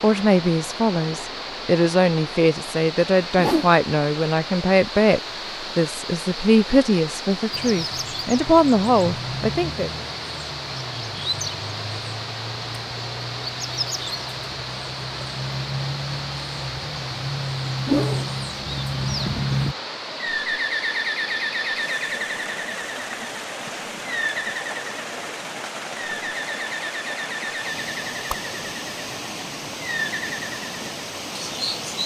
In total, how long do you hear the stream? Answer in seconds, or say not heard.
32 s.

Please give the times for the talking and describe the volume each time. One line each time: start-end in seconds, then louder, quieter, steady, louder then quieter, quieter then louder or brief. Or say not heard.
0.0-9.9 steady.